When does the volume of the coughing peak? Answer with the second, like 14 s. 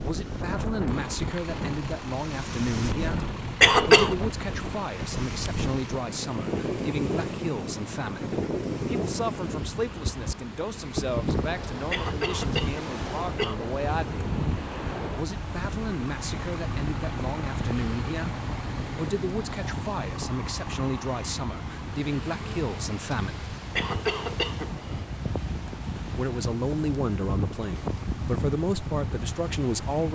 4 s.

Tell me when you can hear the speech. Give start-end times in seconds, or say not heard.
0.0-14.2, 15.2-23.5, 25.9-30.1.